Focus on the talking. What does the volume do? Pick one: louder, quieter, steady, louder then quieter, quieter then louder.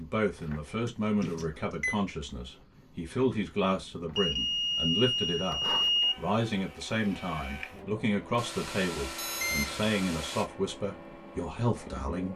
steady.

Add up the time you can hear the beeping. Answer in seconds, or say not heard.
5 s.